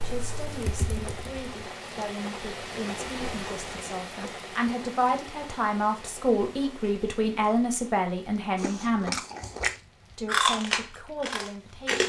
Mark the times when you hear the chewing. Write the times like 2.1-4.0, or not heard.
8.6-12.0.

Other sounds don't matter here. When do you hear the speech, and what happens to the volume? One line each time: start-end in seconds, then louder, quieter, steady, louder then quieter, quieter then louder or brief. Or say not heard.
0.0-9.2 louder
10.2-12.0 brief.